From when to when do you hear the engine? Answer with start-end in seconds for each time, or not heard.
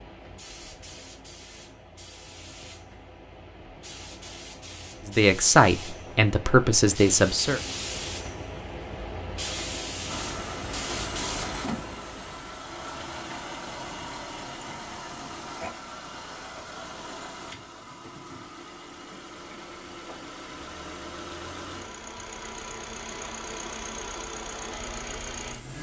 10.1-25.7.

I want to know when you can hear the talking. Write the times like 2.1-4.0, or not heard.
5.0-7.6.